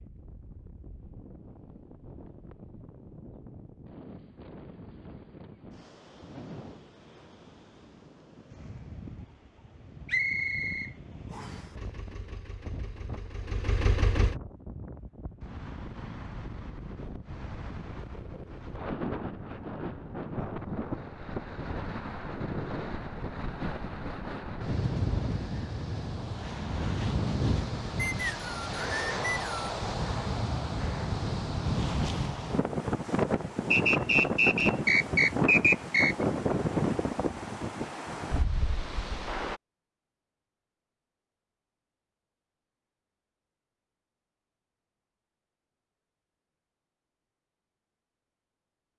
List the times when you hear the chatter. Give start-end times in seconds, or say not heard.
not heard.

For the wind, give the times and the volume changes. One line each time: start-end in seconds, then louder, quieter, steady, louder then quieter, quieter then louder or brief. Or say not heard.
0.0-39.6 louder.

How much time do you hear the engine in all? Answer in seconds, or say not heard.
3 s.